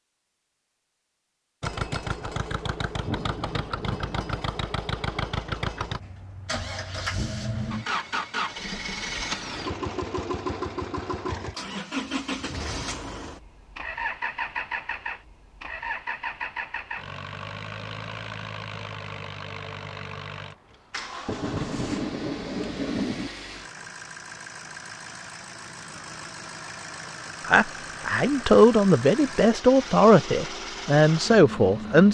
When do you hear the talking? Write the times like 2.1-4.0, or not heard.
27.4-32.1.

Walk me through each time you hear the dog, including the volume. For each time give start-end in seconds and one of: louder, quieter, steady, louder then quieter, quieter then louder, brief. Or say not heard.
not heard.